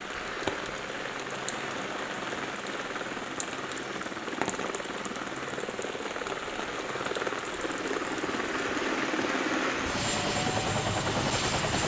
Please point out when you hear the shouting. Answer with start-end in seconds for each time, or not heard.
not heard.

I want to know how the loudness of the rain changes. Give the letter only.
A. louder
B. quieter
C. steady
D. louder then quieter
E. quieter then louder
C.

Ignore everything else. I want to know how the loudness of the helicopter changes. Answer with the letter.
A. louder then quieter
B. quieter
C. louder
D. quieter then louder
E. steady
C.